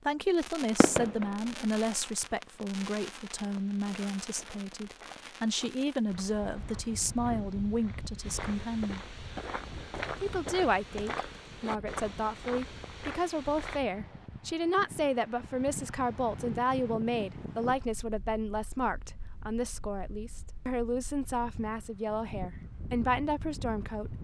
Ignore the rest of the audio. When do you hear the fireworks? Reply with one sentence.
You can hear the fireworks from 0.3 to 6.3 s.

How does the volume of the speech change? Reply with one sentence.
The loudness of the speech stays about the same.